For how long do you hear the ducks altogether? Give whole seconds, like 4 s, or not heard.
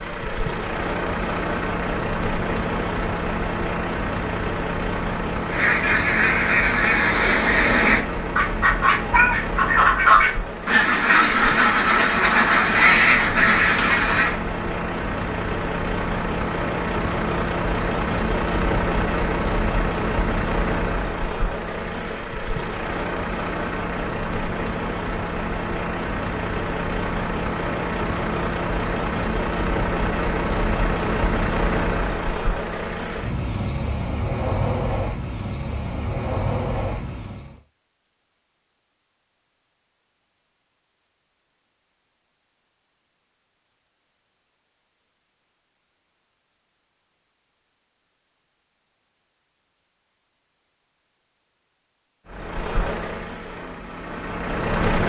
9 s.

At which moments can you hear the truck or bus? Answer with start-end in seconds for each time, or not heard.
0.0-37.6, 52.2-55.0.